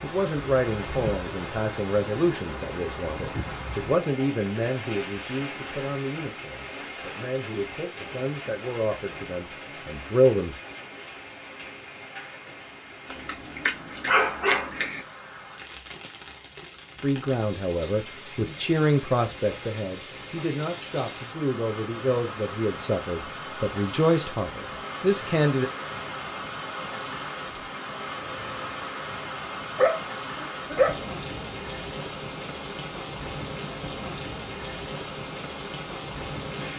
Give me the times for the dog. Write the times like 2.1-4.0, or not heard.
13.1-15.0, 29.8-31.0.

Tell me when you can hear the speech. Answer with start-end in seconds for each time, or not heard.
0.0-10.6, 17.0-25.7.